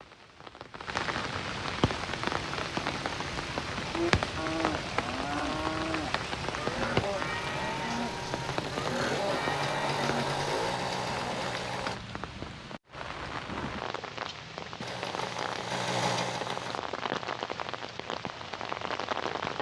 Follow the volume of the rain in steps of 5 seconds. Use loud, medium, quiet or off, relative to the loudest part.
loud, loud, medium, loud.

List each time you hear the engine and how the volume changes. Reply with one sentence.
You can hear the engine from 1.8 to 12.0 s, getting louder; and briefly from 14.8 to 16.8 s.